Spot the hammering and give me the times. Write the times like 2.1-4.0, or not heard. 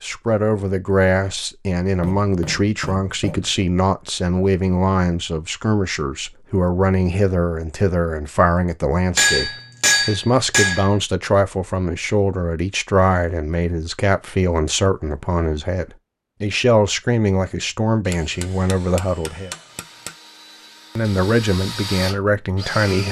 1.9-3.6, 9.2-10.9, 18.1-20.1.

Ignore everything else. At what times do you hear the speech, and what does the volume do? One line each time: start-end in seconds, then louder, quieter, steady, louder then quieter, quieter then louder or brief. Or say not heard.
0.0-19.5 steady
20.9-23.0 brief.